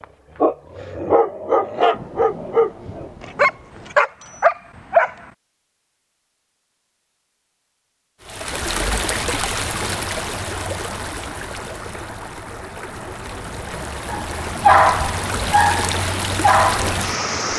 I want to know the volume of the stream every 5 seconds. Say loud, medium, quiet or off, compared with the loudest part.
off, loud, medium, loud.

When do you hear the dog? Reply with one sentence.
You can hear the dog from 0.0 to 5.2 s and from 14.1 to 17.5 s.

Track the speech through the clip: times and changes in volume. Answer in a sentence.
The speech can't be heard in this clip.